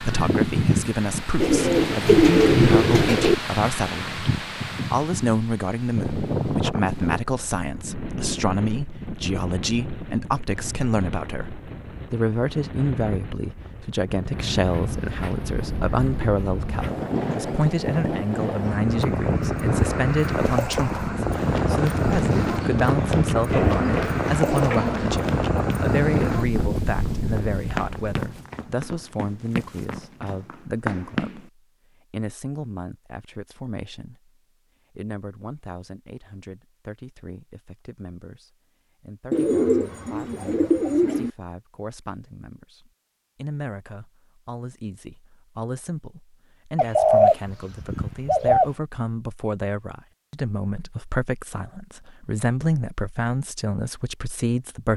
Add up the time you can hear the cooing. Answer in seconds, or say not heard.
10 s.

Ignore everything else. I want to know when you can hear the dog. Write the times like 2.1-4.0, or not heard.
not heard.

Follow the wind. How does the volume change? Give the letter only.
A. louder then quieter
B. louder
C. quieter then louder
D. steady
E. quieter
C.